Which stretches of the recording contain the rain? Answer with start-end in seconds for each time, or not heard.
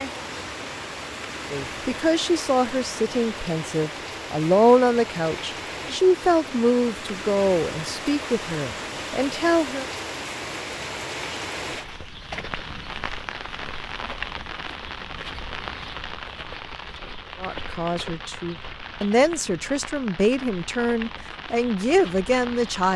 0.0-22.9.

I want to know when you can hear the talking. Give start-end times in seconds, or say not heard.
1.5-9.8, 17.4-22.9.